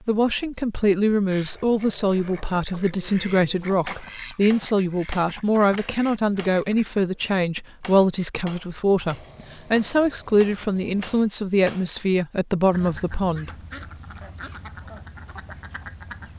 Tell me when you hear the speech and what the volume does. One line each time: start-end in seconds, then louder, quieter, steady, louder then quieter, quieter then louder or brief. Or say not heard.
0.1-13.5 steady.